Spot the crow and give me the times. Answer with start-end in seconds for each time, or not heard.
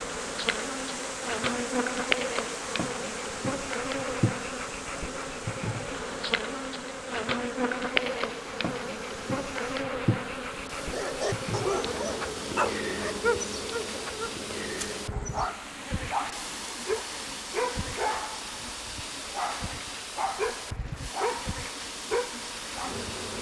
not heard.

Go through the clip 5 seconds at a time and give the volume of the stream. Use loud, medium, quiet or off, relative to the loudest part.
loud, medium, loud, loud, loud.